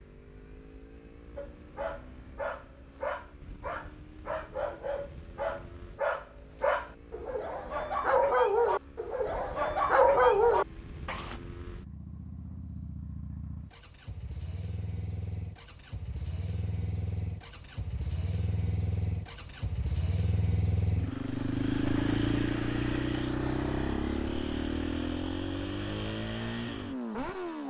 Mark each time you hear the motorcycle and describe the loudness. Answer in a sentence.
You can hear the motorcycle from 0.0 to 27.6 s, getting louder.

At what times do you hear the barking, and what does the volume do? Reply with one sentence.
The barking can be heard from 1.4 to 11.3 s, getting louder.